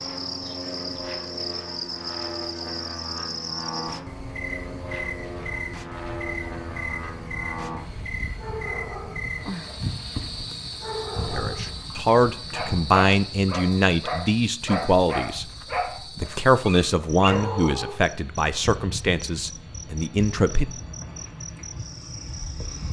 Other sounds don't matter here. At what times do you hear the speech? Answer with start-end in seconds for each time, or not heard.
11.2-15.4, 16.1-20.7.